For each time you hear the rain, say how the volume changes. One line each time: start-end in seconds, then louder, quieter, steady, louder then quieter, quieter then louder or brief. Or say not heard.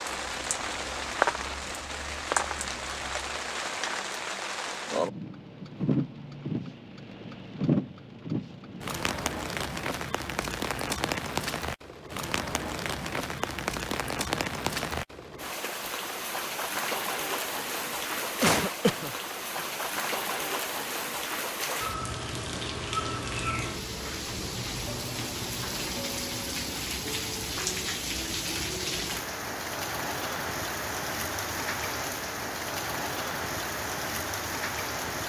0.0-35.2 steady.